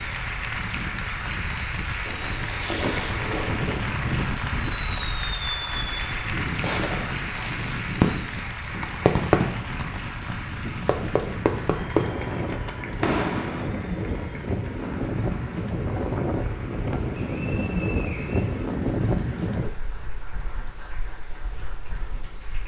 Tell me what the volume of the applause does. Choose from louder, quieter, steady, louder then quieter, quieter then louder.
quieter.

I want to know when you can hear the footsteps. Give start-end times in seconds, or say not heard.
not heard.